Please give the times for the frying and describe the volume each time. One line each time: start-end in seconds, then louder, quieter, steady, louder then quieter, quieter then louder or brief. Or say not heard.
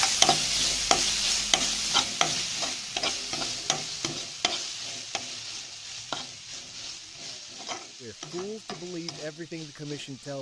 0.0-10.3 quieter.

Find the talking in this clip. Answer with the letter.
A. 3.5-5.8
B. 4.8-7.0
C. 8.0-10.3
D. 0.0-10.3
C.